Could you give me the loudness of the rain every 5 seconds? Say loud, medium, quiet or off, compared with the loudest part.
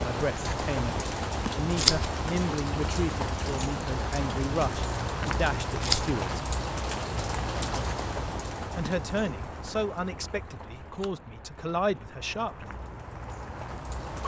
loud, loud, medium.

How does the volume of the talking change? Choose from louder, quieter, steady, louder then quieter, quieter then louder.
steady.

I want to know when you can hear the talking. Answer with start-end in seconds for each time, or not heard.
0.0-6.5, 8.8-12.8.